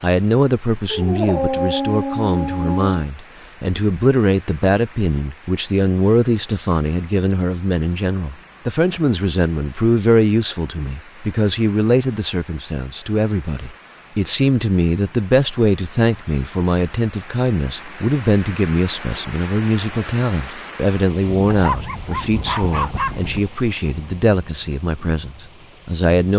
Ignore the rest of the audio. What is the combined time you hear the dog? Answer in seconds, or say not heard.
4 s.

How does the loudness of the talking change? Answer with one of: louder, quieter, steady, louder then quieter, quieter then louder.
steady.